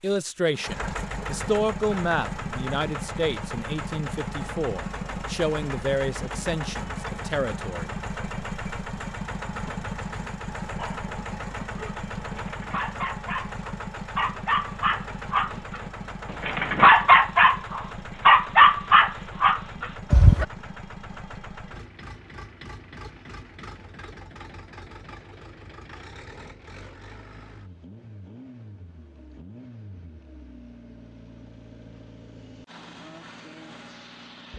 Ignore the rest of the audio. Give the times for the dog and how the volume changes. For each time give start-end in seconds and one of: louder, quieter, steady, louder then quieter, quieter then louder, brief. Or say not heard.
10.8-20.4 louder.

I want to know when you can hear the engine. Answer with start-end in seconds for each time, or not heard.
0.0-34.5.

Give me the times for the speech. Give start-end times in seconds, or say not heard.
0.0-7.9.